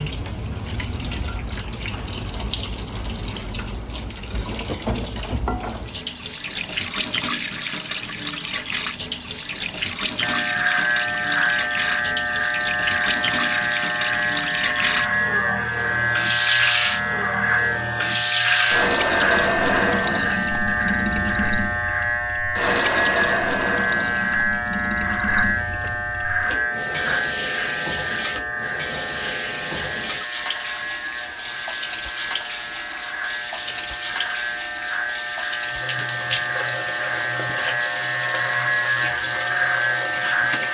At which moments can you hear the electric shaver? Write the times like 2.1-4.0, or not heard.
10.2-40.6.